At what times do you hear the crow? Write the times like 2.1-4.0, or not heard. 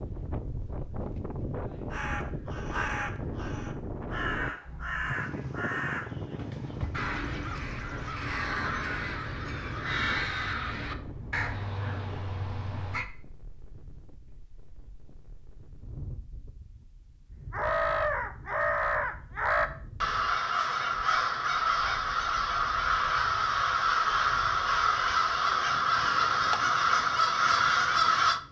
1.9-13.1, 17.5-28.4.